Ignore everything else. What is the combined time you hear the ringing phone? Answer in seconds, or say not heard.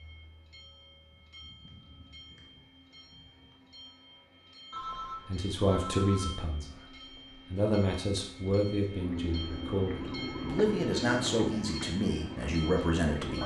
2 s.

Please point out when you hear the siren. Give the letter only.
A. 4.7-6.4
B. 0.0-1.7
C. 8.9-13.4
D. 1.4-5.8
C.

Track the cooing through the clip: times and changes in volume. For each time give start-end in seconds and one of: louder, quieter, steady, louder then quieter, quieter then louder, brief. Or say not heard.
not heard.